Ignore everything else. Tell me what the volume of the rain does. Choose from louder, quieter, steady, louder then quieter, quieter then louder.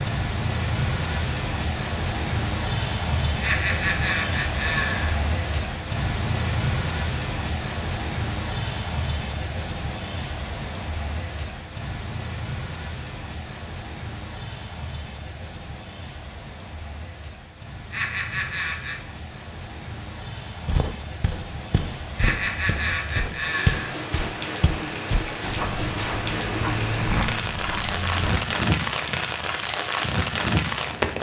quieter then louder.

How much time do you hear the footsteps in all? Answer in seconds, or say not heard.
8 s.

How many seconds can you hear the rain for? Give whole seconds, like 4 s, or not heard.
31 s.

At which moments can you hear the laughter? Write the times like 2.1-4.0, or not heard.
3.4-5.2, 17.9-19.1, 22.1-23.9.